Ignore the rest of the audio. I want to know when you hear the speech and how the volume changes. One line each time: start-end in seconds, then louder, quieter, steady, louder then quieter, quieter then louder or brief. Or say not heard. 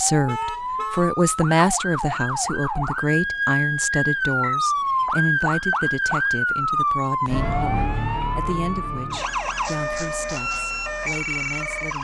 0.0-11.9 quieter.